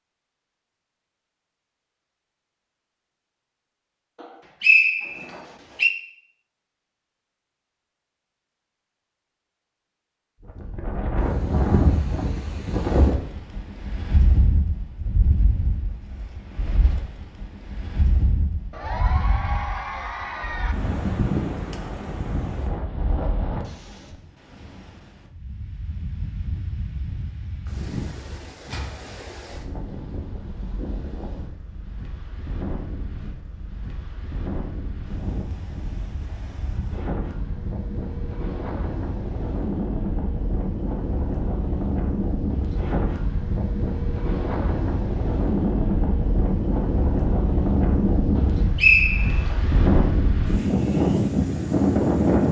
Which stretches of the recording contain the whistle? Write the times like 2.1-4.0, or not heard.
4.2-5.9, 48.4-49.5.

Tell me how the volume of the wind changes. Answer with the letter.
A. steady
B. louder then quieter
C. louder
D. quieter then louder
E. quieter
D.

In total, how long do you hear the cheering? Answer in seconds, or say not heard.
2 s.